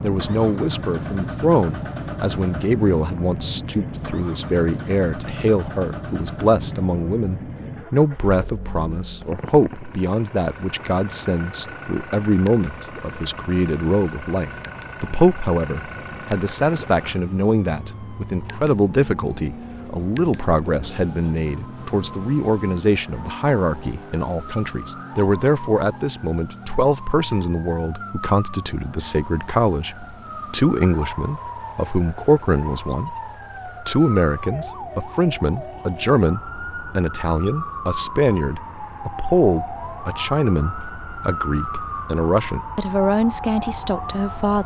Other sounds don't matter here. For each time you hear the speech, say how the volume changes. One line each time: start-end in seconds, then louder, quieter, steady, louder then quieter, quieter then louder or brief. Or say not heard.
0.0-44.6 steady.